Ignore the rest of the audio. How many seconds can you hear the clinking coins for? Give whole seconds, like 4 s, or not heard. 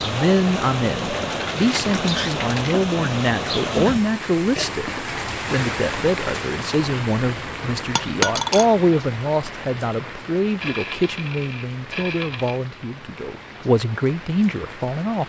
4 s.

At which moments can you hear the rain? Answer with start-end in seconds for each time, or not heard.
0.0-15.2.